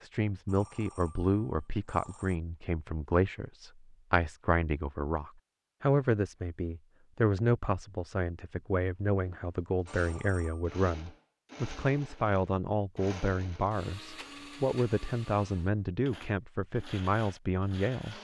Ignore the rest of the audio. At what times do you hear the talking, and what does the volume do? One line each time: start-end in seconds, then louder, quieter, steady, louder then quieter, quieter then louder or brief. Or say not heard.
0.0-18.1 steady.